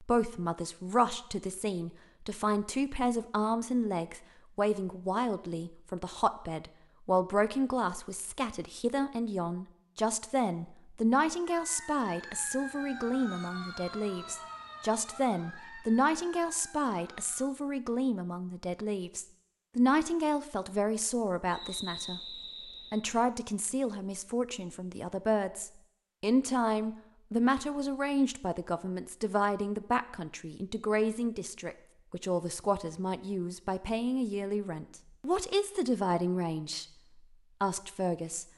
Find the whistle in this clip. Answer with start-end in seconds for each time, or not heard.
21.5-23.0.